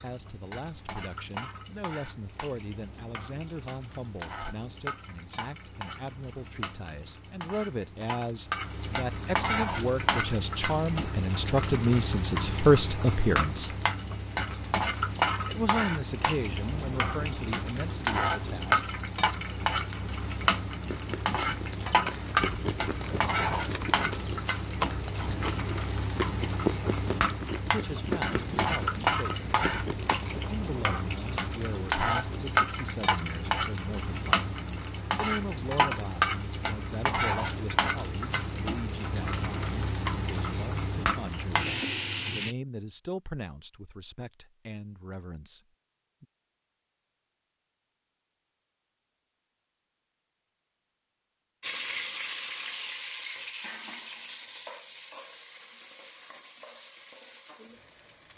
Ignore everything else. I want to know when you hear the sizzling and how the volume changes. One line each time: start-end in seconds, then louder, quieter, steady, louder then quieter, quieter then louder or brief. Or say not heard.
0.0-42.5 louder
51.6-58.3 quieter.